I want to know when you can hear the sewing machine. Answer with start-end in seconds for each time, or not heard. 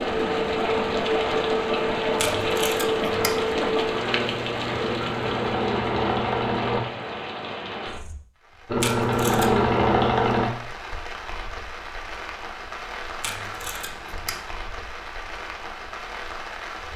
0.0-6.8, 8.7-10.5.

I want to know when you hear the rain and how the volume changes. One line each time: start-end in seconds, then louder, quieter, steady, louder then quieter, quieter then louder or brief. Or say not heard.
0.0-16.9 quieter.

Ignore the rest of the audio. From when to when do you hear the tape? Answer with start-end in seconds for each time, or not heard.
2.1-3.4, 8.8-9.5, 13.2-14.4.